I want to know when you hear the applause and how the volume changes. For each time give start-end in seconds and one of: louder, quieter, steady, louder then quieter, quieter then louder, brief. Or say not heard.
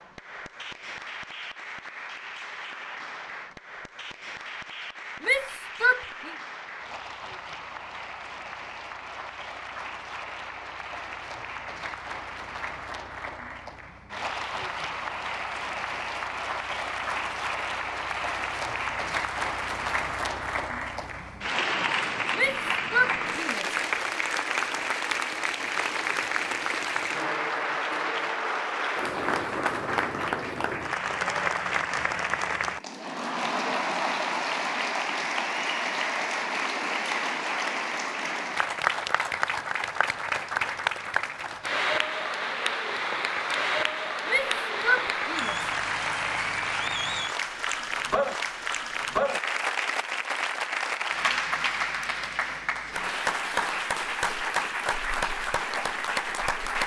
0.0-56.8 louder.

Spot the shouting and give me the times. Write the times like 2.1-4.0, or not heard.
5.2-6.3, 22.4-23.8, 44.2-45.7.